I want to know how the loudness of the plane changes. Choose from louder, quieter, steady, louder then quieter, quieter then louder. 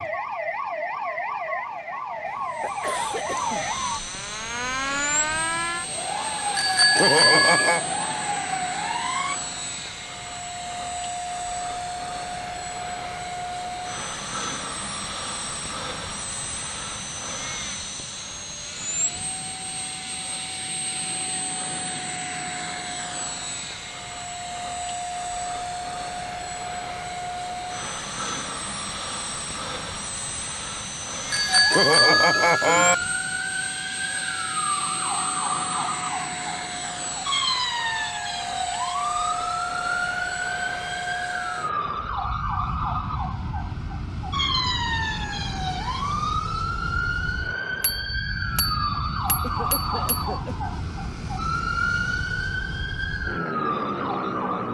steady.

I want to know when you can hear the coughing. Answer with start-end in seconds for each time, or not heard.
2.2-3.8, 49.4-50.5.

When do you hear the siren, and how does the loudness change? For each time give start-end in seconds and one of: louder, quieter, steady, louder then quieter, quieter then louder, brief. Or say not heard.
0.0-9.4 steady
31.4-54.6 steady.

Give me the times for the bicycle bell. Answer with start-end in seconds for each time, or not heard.
6.5-7.8, 31.3-33.0, 47.8-50.3.